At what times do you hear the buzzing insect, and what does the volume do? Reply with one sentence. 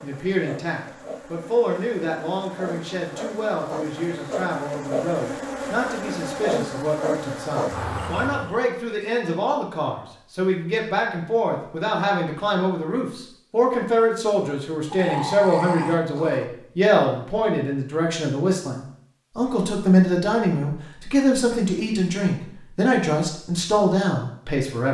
The buzzing insect can be heard from 0.0 to 8.6 s, getting louder.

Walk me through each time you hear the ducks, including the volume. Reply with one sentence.
You can't hear the ducks here.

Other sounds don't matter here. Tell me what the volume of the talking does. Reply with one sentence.
The loudness of the talking goes up.